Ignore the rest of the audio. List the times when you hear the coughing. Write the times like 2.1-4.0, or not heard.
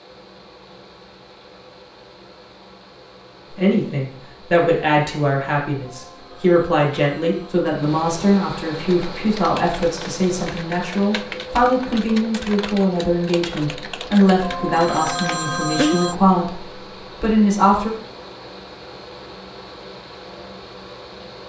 not heard.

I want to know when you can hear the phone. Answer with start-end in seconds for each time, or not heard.
5.8-7.7, 14.4-16.1.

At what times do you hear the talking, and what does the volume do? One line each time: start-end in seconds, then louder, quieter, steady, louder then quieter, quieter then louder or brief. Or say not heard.
3.5-17.9 steady.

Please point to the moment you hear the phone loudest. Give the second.
16 s.